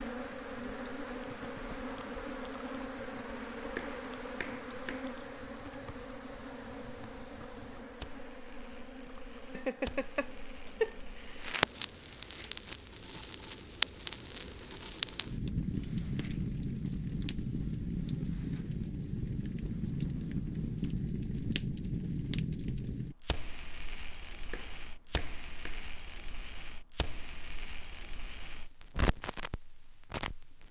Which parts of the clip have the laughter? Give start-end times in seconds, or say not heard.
9.5-11.6.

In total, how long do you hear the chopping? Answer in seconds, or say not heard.
3 s.